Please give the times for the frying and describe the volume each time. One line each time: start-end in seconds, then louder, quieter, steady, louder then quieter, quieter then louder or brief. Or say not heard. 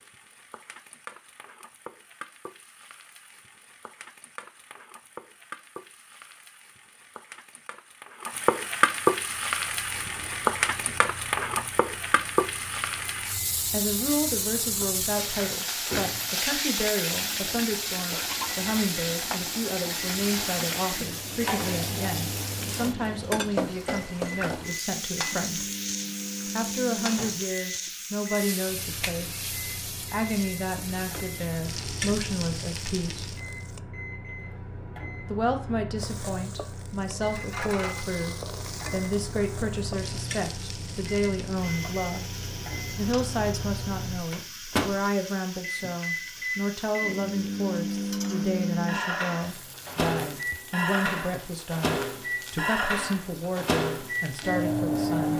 0.0-33.8 louder then quieter
36.0-55.3 quieter.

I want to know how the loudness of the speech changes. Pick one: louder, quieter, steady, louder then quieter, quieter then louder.
steady.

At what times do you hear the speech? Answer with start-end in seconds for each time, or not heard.
13.7-25.6, 26.4-33.3, 35.2-42.2, 43.0-55.3.